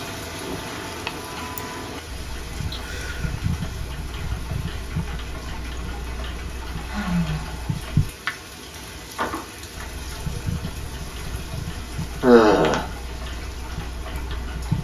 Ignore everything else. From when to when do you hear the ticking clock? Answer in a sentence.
You can hear the ticking clock from 0.0 to 14.7 s.